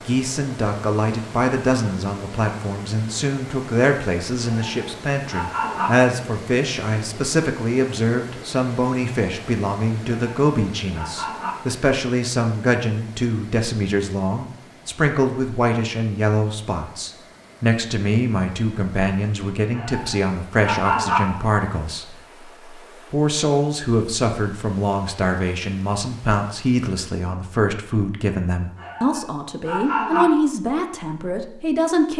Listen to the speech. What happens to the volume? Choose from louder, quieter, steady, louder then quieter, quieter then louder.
steady.